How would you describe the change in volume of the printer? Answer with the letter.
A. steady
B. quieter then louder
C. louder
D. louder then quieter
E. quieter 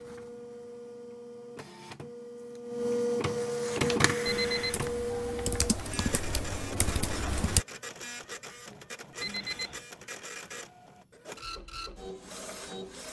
D.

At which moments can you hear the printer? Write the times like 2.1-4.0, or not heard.
0.0-13.0.